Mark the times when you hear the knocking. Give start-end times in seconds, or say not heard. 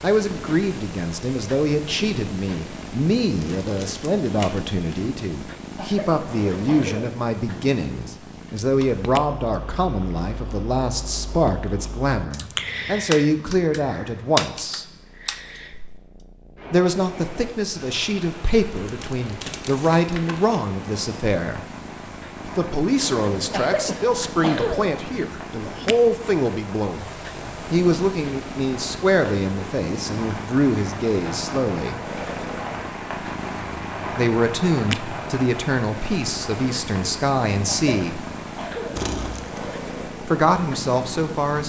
not heard.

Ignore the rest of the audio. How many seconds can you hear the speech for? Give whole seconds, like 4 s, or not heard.
34 s.